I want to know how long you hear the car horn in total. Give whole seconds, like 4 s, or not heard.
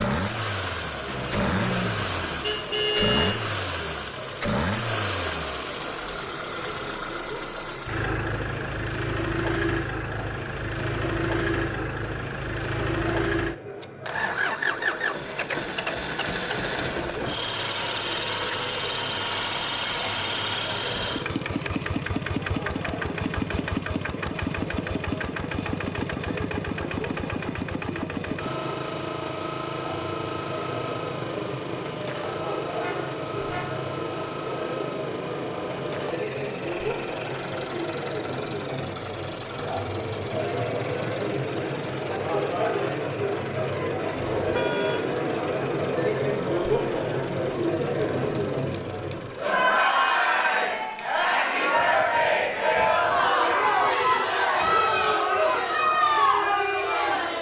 4 s.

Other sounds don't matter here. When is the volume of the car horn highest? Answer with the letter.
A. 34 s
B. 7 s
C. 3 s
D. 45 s
C.